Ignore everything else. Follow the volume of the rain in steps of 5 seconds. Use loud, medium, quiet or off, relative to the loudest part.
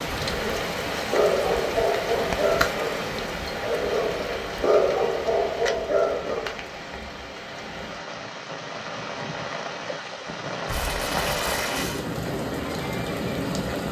loud, medium, loud.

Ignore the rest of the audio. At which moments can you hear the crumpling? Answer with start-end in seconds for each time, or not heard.
10.7-12.1.